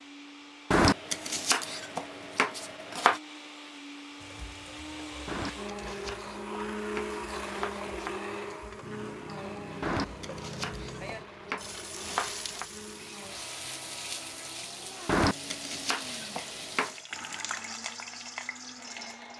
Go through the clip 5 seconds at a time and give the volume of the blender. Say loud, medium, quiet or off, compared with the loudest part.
medium, loud, medium, medium.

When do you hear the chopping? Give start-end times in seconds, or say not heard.
0.7-3.2, 5.2-8.2, 9.8-12.7, 15.1-17.1.